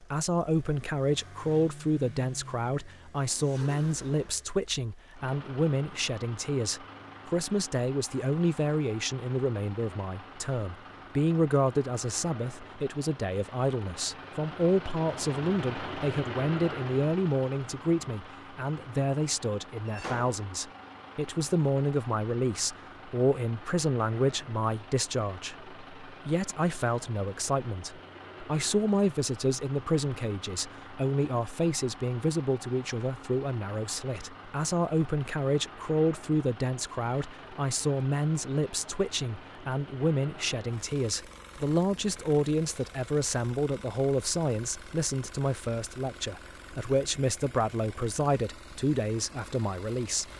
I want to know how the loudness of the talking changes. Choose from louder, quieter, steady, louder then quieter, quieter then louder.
steady.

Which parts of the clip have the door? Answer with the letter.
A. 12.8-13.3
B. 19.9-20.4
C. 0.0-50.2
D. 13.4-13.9
B.